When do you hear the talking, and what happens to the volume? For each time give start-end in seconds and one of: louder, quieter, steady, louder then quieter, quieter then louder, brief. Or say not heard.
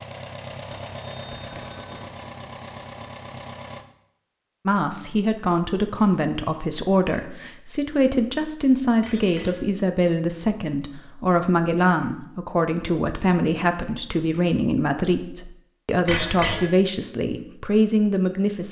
4.7-18.6 steady.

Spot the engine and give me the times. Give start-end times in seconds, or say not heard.
0.0-3.9.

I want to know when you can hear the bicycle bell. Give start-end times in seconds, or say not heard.
0.7-2.0, 9.0-9.7, 16.1-16.8.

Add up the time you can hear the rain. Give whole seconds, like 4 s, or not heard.
not heard.